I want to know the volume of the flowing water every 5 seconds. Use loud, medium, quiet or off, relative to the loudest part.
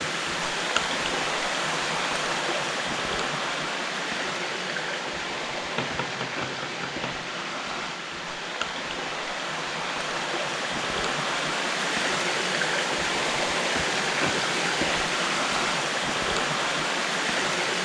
loud, medium, loud, loud.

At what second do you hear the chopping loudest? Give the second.
6 s.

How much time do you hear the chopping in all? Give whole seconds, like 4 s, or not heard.
2 s.